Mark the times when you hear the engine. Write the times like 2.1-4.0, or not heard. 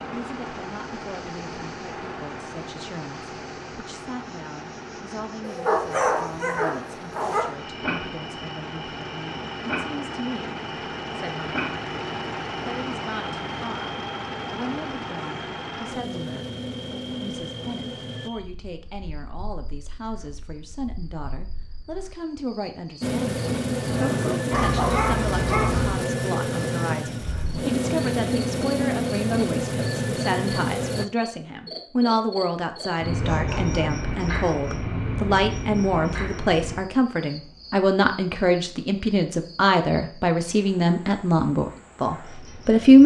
0.0-18.3, 23.0-31.1.